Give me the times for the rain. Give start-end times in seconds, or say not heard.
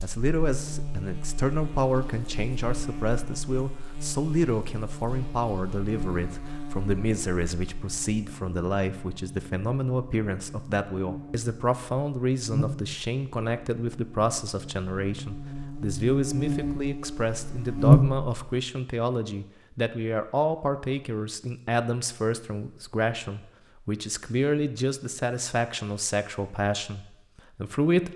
not heard.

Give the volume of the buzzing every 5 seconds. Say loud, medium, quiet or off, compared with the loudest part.
quiet, quiet, quiet, loud, off, off.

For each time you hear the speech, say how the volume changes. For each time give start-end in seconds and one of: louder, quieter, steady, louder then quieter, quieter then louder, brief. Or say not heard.
0.0-28.1 steady.